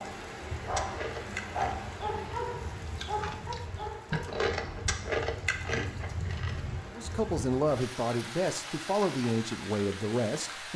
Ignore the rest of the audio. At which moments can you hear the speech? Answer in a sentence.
You can hear the speech from 7.0 to 10.7 s.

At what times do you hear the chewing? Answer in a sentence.
The chewing can be heard from 0.6 to 6.8 s.